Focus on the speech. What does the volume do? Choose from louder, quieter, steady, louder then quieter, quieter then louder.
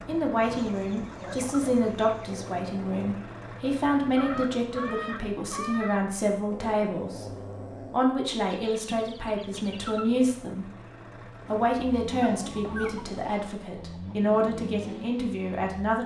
steady.